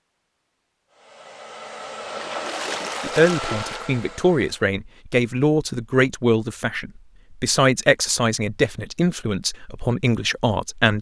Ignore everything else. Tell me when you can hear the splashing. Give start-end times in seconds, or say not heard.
2.0-3.9.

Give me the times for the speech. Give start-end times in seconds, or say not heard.
3.0-10.9.